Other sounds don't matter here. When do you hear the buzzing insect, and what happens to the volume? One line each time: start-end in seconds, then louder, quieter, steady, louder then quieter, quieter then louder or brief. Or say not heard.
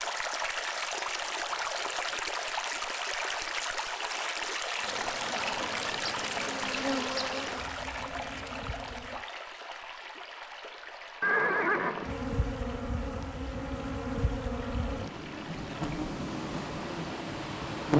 4.8-9.2 louder then quieter
12.0-17.9 steady.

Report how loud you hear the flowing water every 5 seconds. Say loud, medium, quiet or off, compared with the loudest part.
loud, loud, quiet, medium.